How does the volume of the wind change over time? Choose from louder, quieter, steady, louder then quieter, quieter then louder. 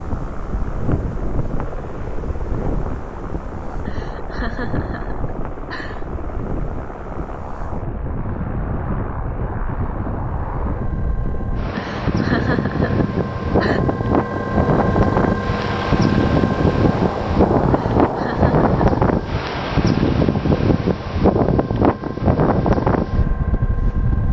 louder.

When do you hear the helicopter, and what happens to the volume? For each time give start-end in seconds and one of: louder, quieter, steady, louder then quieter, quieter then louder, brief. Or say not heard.
0.0-24.2 louder then quieter.